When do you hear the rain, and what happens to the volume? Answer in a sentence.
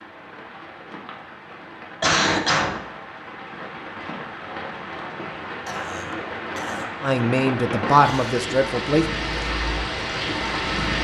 You can hear the rain from 0.0 to 10.9 s, getting louder.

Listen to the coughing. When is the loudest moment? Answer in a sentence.
The loudest moment of the coughing is at 2 seconds.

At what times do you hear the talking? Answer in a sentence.
You can hear the talking from 7.0 to 9.1 s.